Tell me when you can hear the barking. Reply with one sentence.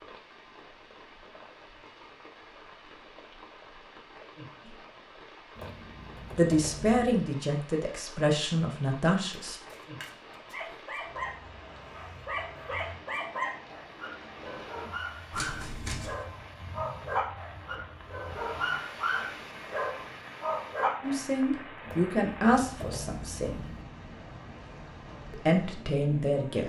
You can hear the barking from 10.5 to 21.2 s.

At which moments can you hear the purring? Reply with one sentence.
The purring can't be heard in this clip.